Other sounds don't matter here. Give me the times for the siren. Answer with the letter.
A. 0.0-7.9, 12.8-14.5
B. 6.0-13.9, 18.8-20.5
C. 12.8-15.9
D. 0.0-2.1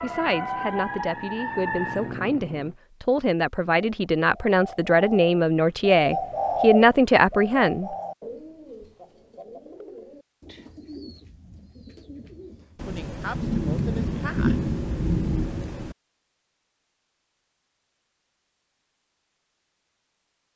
D.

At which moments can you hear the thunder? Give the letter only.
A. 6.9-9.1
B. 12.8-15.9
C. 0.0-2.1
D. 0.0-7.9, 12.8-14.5
B.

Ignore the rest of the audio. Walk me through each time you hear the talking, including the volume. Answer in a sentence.
The talking can be heard from 0.0 to 7.9 s, getting louder; and briefly from 12.8 to 14.5 s.